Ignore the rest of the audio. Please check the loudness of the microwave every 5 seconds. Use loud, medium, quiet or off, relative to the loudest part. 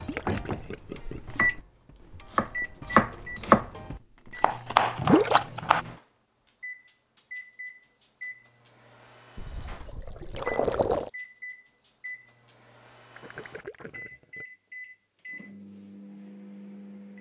loud, medium, medium, medium.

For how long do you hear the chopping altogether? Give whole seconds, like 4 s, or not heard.
6 s.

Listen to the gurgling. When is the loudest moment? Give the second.
5 s.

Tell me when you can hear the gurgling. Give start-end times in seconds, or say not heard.
0.1-1.5, 5.0-5.5, 9.3-11.1, 13.2-14.4.